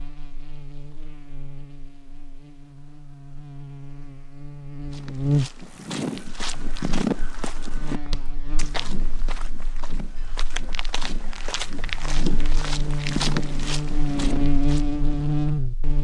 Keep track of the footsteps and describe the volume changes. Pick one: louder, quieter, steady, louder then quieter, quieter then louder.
quieter then louder.